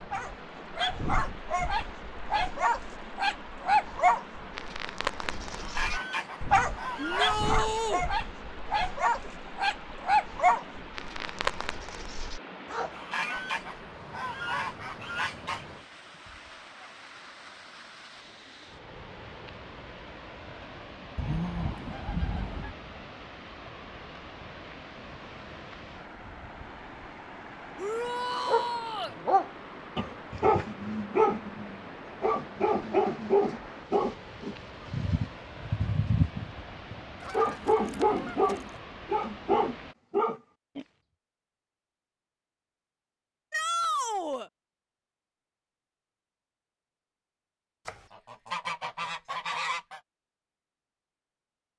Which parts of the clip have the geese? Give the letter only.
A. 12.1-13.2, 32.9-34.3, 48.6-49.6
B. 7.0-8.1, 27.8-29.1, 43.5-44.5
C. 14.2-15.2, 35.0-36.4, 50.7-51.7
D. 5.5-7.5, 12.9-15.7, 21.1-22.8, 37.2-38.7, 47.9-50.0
D.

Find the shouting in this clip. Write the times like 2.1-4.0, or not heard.
7.0-8.1, 27.8-29.1, 43.5-44.5.